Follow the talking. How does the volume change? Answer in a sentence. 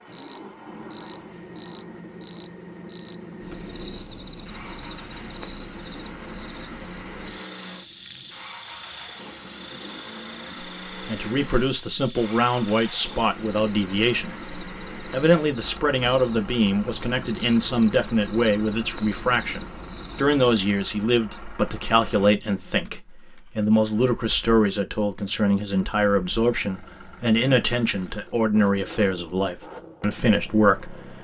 The volume of the talking stays about the same.